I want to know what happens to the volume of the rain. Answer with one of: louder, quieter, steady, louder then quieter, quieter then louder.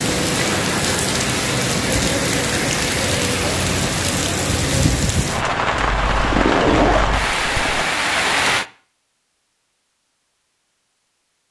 steady.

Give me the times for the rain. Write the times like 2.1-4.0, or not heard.
0.0-8.7.